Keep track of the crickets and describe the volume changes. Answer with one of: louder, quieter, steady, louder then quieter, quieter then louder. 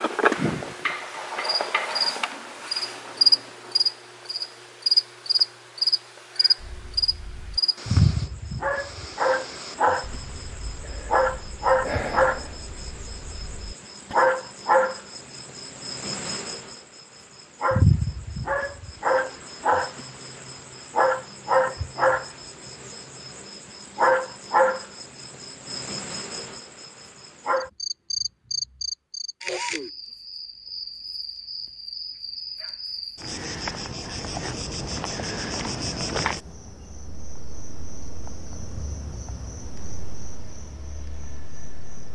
quieter.